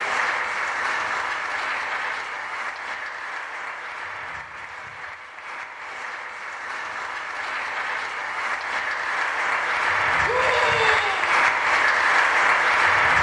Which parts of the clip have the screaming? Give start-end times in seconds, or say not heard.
10.2-11.4.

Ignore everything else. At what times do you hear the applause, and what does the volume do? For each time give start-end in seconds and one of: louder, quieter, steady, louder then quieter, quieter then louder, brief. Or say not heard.
0.0-13.1 quieter then louder.